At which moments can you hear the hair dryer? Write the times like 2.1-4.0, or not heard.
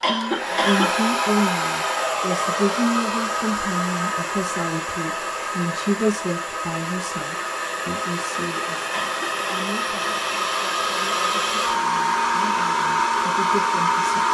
0.0-14.2.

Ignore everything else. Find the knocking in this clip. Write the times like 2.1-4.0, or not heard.
not heard.